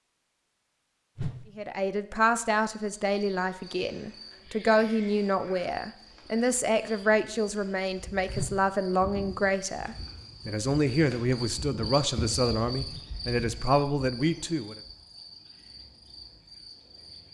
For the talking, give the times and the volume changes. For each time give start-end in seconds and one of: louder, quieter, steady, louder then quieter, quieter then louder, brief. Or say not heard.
1.6-14.8 steady.